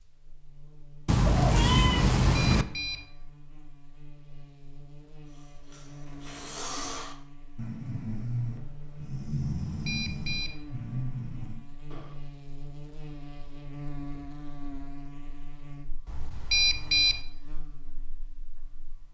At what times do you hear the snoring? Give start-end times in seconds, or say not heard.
5.7-12.2.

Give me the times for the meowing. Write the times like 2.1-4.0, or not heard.
1.1-2.6.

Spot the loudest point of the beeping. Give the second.
17 s.